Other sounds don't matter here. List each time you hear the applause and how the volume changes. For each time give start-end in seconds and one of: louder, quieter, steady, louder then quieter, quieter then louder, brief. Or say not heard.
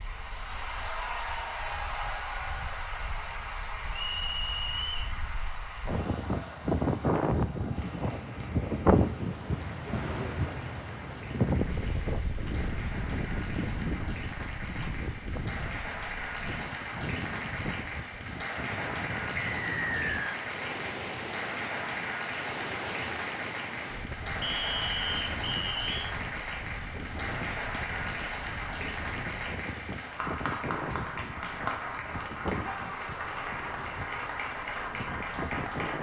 0.0-35.9 quieter then louder.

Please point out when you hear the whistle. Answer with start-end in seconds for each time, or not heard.
3.9-5.2, 19.4-20.4, 24.4-26.1.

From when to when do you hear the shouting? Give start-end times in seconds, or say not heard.
32.6-33.5.